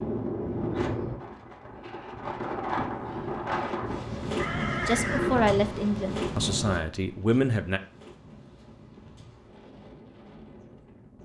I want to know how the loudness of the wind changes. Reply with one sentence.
The loudness of the wind goes down.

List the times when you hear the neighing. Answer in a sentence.
The neighing can be heard from 4.3 to 5.5 s.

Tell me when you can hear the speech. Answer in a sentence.
You can hear the speech from 4.8 to 7.8 s.